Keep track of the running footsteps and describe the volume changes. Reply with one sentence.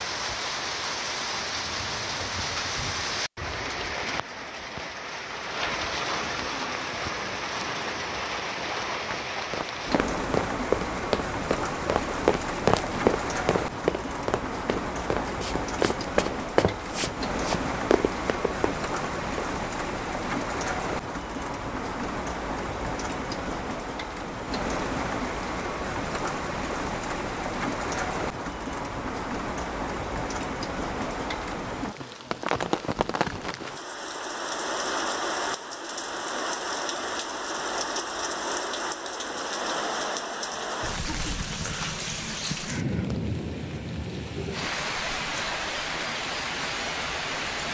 The loudness of the running footsteps stays about the same.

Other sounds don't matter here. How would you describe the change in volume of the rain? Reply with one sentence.
The loudness of the rain stays about the same.